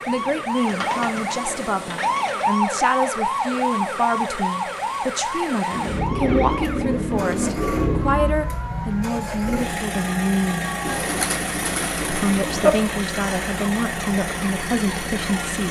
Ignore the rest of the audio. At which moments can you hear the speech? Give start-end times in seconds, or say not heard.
0.1-10.7, 12.1-15.6.